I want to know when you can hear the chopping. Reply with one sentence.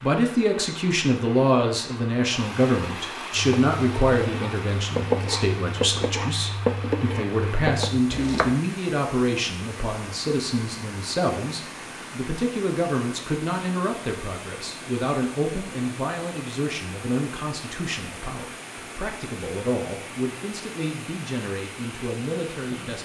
The chopping can be heard from 3.3 to 8.6 s.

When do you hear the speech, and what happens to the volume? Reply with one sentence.
You can hear the speech from 0.0 to 23.0 s, getting quieter.